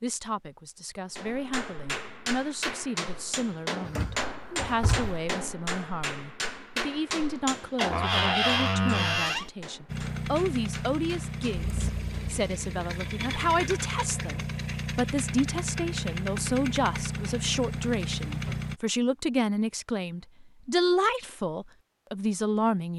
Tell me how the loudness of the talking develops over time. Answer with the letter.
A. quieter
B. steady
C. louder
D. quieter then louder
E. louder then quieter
C.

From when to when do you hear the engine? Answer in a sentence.
You can hear the engine from 9.8 to 18.8 s.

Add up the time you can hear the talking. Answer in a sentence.
You can hear the talking for 23 seconds altogether.